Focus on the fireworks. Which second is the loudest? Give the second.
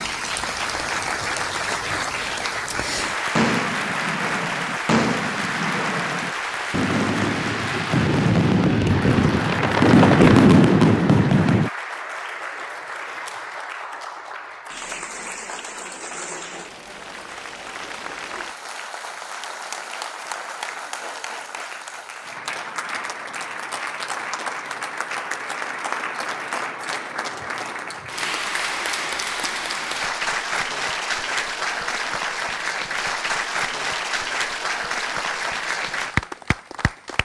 10 s.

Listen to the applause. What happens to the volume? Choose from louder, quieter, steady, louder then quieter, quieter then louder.
quieter then louder.